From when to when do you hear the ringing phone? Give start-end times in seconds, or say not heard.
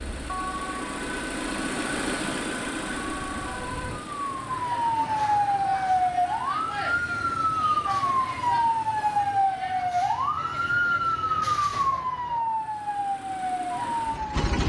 not heard.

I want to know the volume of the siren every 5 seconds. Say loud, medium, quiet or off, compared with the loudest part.
medium, loud, loud.